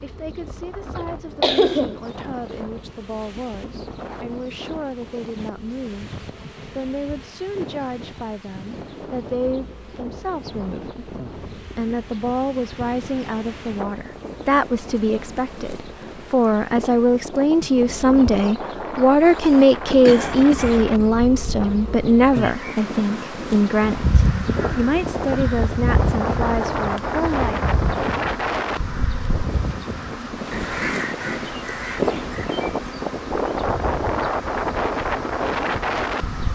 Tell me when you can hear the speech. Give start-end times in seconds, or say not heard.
0.0-27.6.